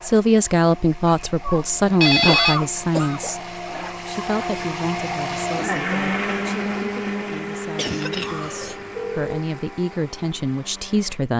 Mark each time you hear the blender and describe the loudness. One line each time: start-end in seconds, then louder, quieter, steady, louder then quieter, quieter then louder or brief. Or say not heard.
0.0-11.3 louder then quieter.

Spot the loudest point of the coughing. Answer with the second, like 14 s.
2 s.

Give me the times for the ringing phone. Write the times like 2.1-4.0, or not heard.
1.2-2.6, 8.2-9.4.